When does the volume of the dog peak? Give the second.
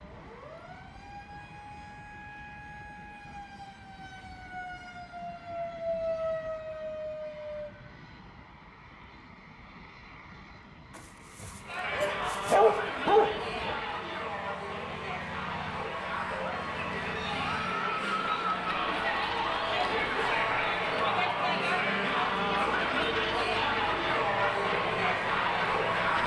13 s.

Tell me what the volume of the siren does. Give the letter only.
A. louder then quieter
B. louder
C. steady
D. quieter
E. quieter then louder
B.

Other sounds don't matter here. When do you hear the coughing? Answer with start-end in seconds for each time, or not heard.
not heard.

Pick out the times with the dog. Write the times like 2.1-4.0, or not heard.
10.9-13.8.